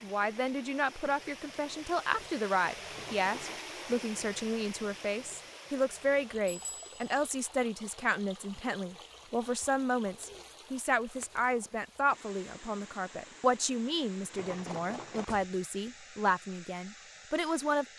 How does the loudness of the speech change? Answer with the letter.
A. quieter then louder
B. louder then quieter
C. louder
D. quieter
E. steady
E.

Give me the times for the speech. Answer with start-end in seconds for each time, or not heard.
0.0-17.9.